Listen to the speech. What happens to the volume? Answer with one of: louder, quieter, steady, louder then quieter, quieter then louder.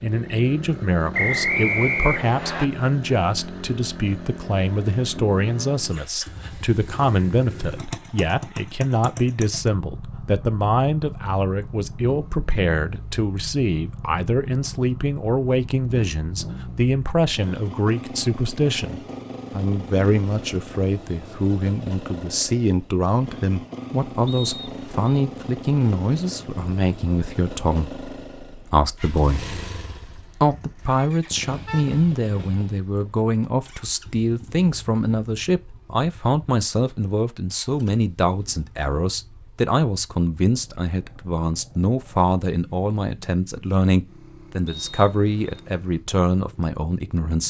steady.